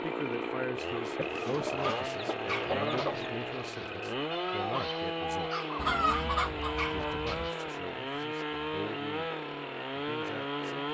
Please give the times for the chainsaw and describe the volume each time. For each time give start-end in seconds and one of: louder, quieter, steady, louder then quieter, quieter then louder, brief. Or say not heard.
0.0-10.8 steady.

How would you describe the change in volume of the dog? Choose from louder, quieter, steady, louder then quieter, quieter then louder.
louder.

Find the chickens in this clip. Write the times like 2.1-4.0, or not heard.
1.1-3.3, 5.8-7.5.